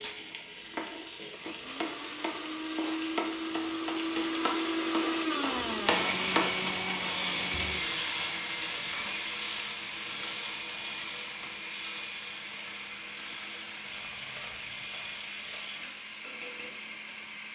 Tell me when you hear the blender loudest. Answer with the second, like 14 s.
5 s.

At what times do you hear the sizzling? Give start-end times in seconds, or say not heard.
0.0-17.4.